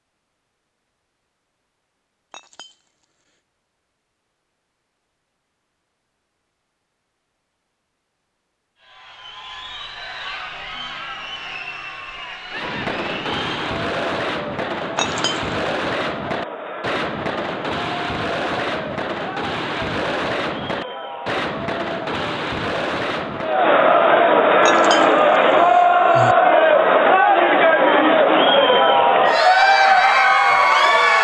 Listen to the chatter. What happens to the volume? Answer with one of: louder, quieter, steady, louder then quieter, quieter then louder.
louder.